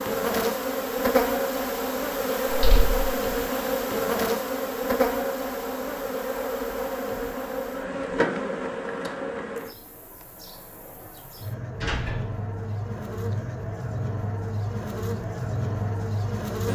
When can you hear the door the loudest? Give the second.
8 s.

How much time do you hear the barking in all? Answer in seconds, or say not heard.
not heard.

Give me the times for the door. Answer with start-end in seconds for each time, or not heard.
2.5-3.0, 8.0-9.1, 11.8-12.3.